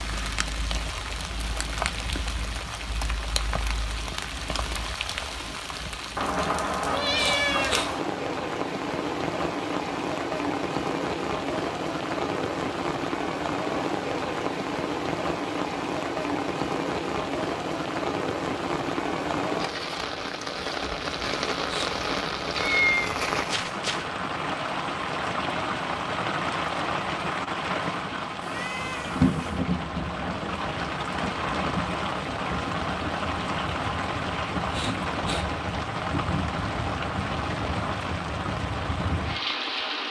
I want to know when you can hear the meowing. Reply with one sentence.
The meowing can be heard from 6.8 to 7.9 s, from 22.6 to 24.1 s and from 28.4 to 29.6 s.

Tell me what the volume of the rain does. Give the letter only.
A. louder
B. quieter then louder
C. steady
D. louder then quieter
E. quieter
C.